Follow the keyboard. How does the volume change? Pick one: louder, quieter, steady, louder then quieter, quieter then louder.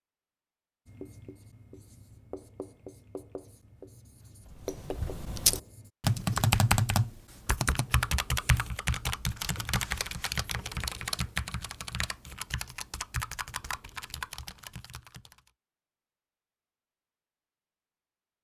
quieter.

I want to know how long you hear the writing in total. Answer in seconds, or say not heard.
5 s.